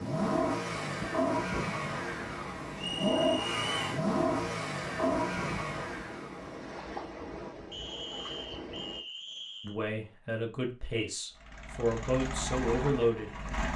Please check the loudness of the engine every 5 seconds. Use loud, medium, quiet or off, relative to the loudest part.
loud, loud, medium.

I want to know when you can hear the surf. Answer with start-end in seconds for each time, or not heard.
0.0-9.0.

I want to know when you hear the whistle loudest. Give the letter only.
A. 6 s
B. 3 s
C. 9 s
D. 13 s
B.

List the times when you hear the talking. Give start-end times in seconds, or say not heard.
9.6-13.4.